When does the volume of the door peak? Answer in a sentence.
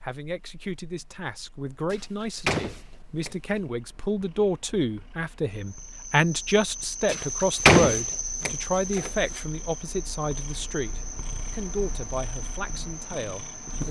The loudest moment of the door is at 8 seconds.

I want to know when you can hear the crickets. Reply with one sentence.
The crickets can be heard from 5.5 to 13.8 s.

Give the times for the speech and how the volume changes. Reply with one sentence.
You can hear the speech from 0.0 to 13.8 s, getting louder then quieter.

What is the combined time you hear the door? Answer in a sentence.
The door can be heard for 4 seconds in total.